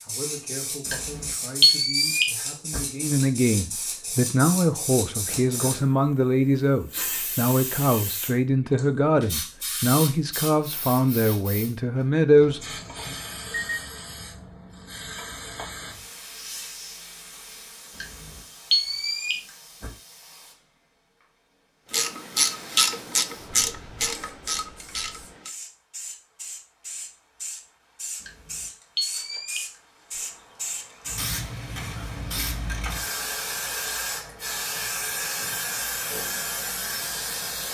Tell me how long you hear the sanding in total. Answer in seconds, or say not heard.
not heard.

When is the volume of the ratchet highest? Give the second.
23 s.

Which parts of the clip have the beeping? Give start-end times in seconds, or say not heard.
0.8-2.8, 17.9-19.9, 28.2-29.7.